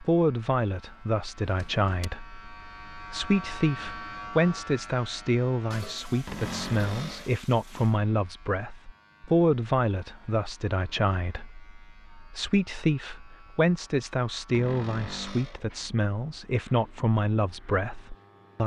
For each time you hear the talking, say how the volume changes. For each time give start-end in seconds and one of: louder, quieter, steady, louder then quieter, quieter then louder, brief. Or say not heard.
0.0-18.6 steady.